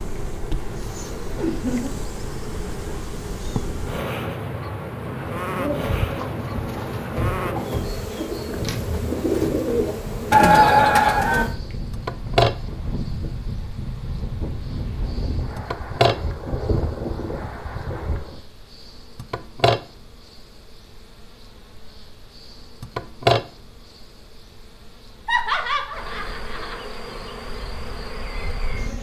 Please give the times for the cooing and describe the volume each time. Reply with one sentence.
The cooing can be heard from 5.5 to 11.4 s, getting louder.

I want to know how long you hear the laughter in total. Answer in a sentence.
The laughter can be heard for 3 seconds in total.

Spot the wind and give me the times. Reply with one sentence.
The wind can be heard from 0.0 to 18.4 s.